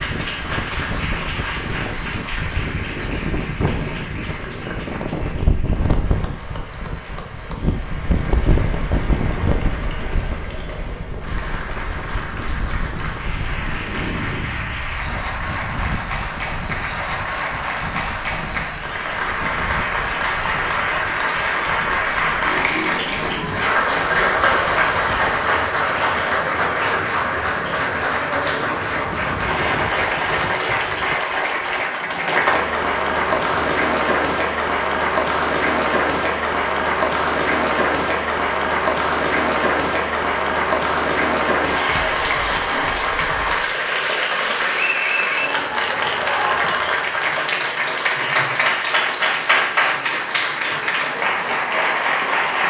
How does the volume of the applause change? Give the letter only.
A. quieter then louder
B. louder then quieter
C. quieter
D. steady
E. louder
E.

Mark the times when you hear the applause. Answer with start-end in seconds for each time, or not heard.
0.0-52.6.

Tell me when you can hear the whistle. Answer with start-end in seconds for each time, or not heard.
not heard.